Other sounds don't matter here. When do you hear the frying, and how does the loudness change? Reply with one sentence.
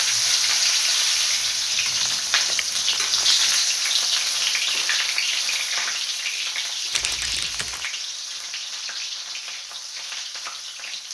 You can hear the frying from 0.0 to 11.0 s, getting quieter.